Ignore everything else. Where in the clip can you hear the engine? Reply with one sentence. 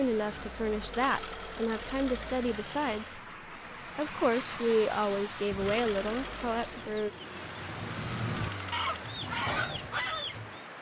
The engine can be heard from 0.0 to 3.2 s and from 5.5 to 9.2 s.